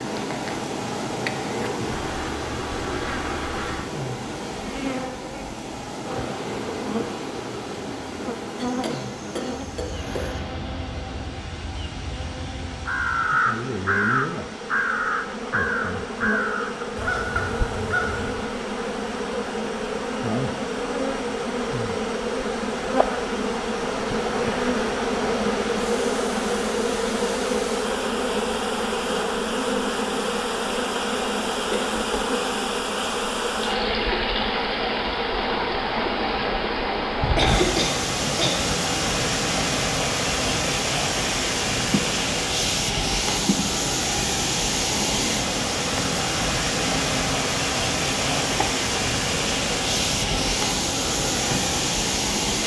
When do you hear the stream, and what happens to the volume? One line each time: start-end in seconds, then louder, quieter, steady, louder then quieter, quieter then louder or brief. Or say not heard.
0.0-52.6 quieter then louder.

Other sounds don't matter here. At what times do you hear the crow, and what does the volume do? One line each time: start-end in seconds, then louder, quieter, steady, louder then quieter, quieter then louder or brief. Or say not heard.
12.8-18.5 quieter.